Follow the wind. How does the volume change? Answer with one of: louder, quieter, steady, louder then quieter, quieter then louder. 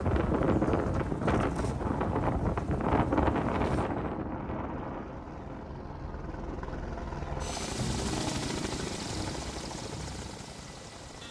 quieter.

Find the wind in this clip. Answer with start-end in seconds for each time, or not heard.
0.0-7.1.